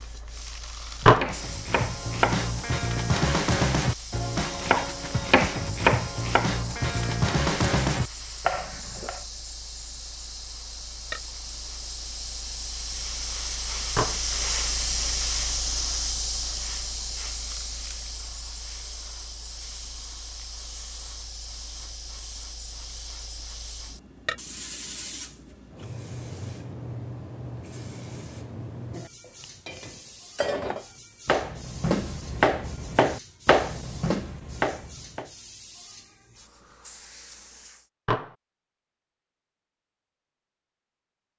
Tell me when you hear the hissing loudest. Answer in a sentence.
The loudest moment of the hissing is at 15 seconds.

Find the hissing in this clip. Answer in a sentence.
You can hear the hissing from 0.0 to 37.9 s.